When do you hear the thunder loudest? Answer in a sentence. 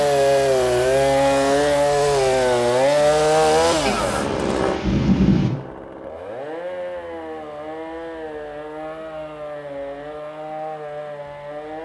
The volume of the thunder peaks at 5 seconds.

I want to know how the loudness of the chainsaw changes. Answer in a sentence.
The volume of the chainsaw goes down.